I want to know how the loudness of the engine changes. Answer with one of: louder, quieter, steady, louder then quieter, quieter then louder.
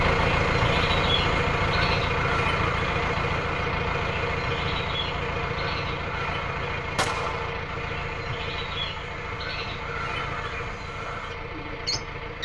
quieter.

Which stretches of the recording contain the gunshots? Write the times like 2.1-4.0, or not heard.
7.0-7.6.